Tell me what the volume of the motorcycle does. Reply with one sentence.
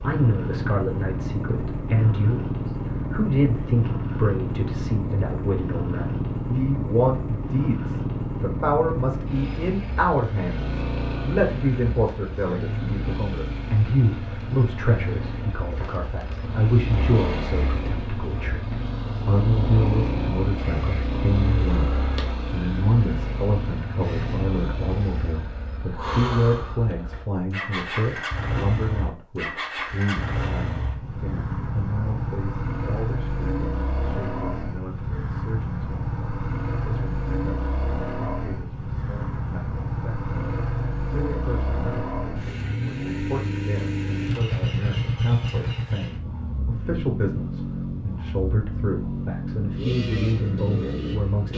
The volume of the motorcycle stays about the same.